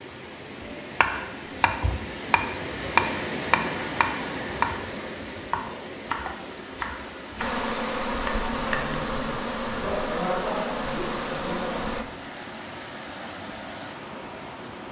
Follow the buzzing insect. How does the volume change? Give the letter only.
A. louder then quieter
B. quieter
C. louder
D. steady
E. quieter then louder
D.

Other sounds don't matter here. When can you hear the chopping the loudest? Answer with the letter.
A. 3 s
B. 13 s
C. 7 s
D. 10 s
A.